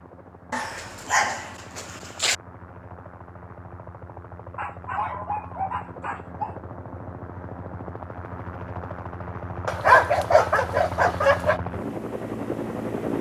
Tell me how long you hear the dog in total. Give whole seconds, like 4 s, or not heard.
6 s.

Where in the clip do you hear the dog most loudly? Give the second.
10 s.